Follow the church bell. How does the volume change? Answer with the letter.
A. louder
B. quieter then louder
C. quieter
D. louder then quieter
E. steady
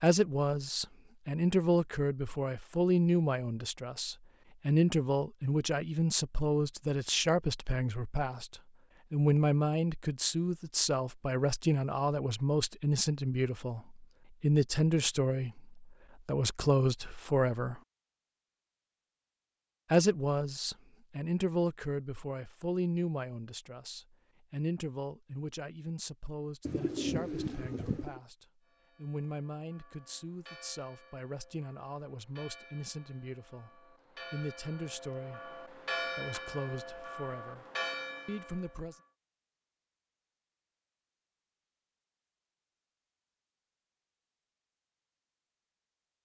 A.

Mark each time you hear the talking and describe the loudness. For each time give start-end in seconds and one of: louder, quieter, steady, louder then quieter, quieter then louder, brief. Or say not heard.
0.0-17.8 steady
19.9-37.6 quieter
38.2-39.0 brief.